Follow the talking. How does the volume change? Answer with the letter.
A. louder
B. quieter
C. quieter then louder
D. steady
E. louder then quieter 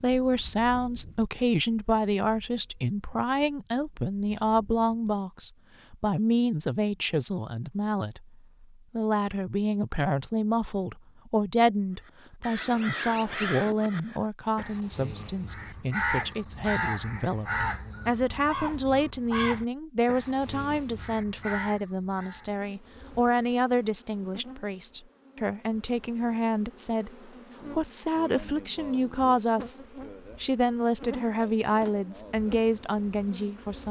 D.